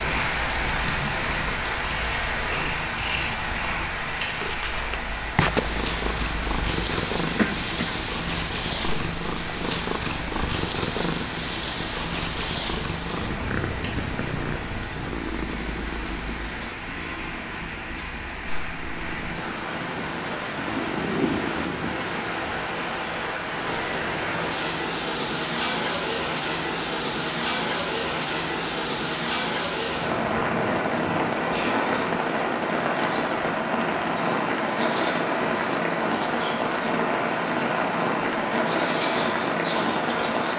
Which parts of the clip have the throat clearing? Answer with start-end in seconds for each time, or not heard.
7.3-8.0, 20.8-21.4.